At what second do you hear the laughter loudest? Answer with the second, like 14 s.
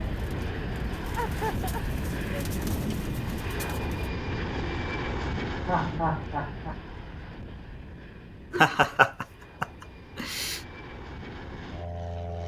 9 s.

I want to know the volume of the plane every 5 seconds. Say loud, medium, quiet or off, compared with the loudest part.
loud, medium, medium.